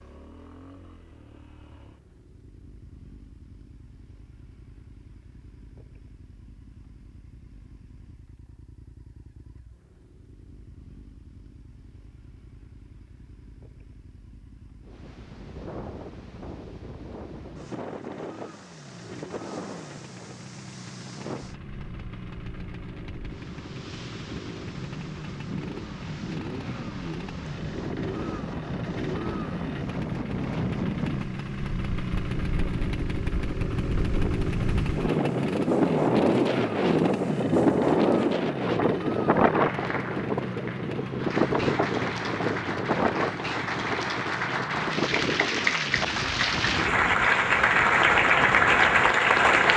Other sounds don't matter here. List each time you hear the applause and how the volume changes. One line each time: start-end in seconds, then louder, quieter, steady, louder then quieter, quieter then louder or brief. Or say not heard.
39.6-49.7 louder.